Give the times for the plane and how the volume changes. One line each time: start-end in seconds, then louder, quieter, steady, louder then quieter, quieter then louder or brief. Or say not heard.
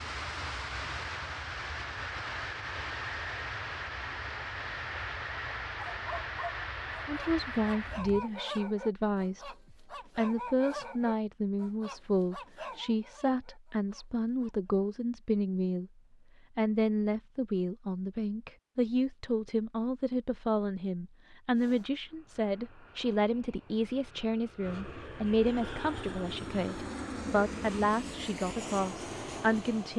0.0-8.2 steady
21.5-29.9 louder.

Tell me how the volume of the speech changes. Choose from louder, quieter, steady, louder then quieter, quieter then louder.
steady.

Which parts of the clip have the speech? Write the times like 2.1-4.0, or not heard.
7.0-15.9, 16.6-29.9.